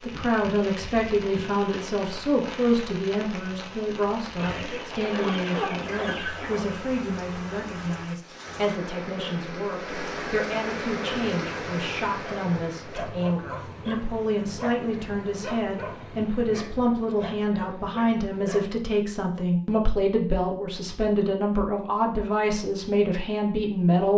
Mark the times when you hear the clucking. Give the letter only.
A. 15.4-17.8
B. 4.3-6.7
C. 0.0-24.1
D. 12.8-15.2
B.